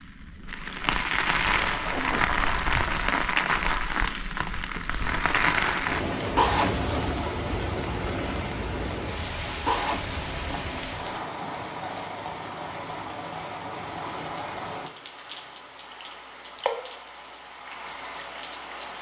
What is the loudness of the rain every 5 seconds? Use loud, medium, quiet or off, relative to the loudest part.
loud, loud, medium, medium.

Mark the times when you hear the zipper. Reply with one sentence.
You can hear the zipper from 6.3 to 7.2 s and from 9.7 to 11.2 s.